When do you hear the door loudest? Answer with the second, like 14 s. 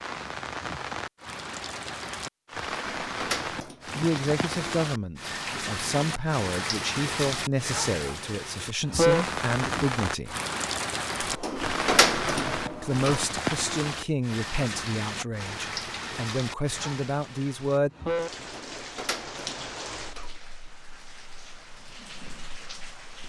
12 s.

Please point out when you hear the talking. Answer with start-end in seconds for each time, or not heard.
3.9-10.3, 12.8-17.9.